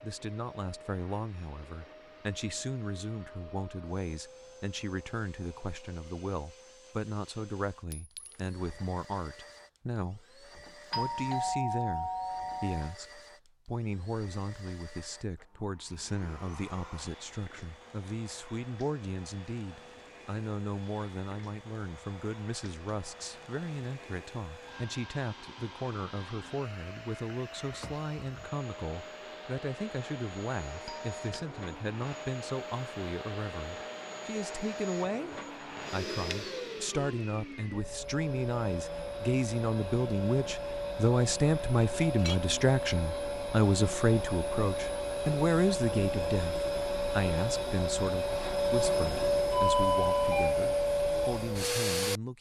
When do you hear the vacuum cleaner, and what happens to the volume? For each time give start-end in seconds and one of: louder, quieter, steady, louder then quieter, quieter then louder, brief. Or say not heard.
0.0-52.3 louder.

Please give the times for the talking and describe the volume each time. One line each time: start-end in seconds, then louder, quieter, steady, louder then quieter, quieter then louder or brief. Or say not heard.
0.0-52.3 louder.